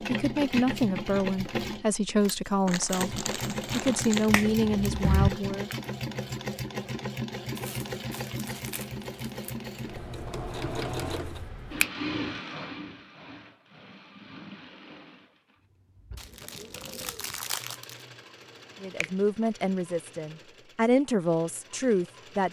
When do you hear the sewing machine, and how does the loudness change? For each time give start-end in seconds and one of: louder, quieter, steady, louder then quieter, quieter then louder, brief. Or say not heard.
0.0-22.4 quieter.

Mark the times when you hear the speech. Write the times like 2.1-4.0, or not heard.
0.0-5.7, 18.8-22.4.